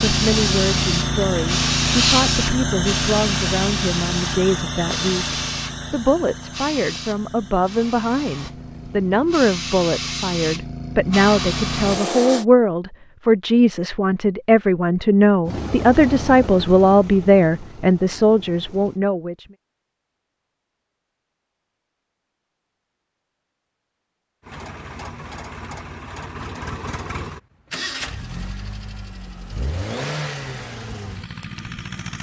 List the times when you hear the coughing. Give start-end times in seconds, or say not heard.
not heard.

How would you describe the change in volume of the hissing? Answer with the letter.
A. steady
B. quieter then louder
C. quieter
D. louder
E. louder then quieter
B.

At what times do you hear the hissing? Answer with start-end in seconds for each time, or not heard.
0.0-12.4.